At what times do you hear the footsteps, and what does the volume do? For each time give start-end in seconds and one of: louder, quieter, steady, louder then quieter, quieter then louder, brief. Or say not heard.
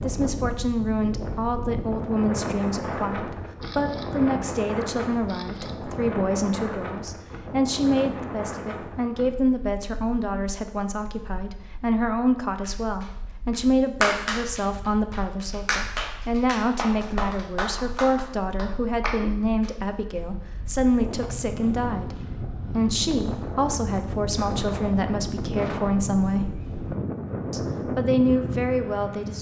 not heard.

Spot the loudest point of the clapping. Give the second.
14 s.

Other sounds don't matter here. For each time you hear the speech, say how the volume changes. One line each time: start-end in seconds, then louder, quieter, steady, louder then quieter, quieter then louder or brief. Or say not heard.
0.0-26.6 steady
27.5-29.3 brief.